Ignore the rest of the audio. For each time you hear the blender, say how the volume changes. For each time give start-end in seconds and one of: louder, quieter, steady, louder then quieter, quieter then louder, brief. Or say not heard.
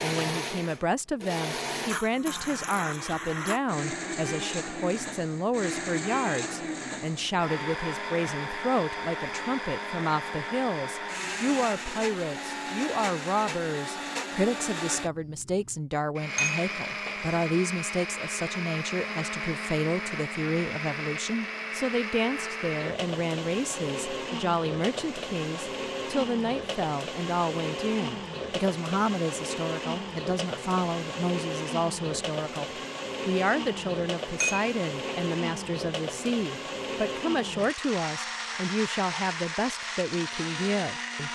0.0-41.2 steady.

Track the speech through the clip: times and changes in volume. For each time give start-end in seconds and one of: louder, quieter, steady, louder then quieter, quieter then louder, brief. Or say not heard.
0.0-32.6 steady
33.2-41.2 steady.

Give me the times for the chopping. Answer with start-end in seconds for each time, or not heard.
not heard.